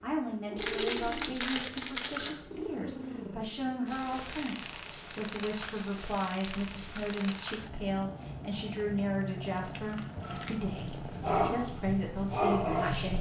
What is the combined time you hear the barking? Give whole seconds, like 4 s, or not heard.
3 s.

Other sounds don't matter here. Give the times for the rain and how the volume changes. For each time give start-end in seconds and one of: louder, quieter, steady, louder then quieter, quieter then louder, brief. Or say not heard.
not heard.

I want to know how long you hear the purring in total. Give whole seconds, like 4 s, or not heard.
13 s.